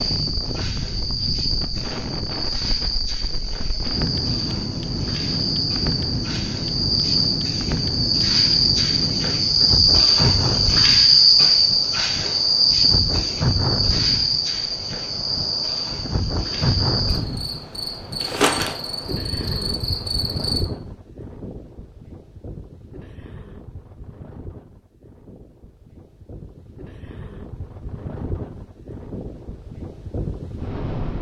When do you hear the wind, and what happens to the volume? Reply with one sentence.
The wind can be heard from 0.0 to 31.1 s, getting quieter.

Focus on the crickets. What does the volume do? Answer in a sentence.
The volume of the crickets goes up, then down.